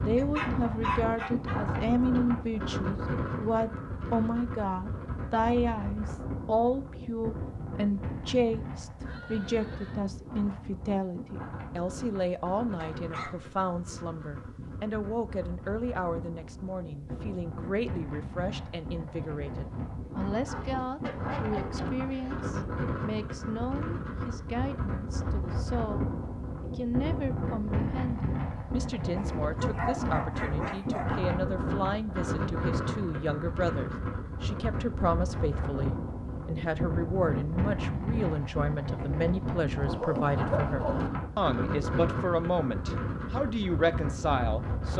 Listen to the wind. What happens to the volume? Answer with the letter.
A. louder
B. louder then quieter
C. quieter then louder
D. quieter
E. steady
C.